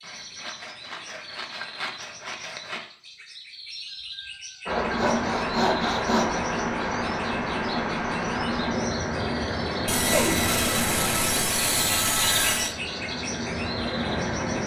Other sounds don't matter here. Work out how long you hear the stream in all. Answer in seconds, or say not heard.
10 s.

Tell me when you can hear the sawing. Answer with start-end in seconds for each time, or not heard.
0.0-2.9, 4.9-6.5, 9.8-12.8.